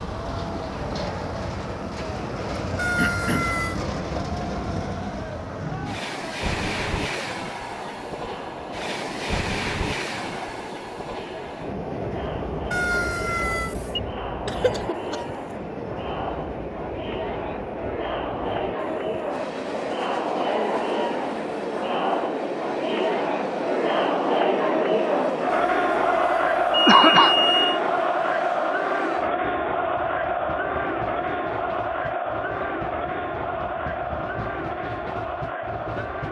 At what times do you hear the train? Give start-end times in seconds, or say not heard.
0.0-36.2.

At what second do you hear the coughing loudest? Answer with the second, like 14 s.
27 s.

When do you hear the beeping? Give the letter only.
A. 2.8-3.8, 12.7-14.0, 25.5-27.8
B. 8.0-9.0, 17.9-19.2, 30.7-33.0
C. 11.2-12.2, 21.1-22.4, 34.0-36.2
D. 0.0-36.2
A.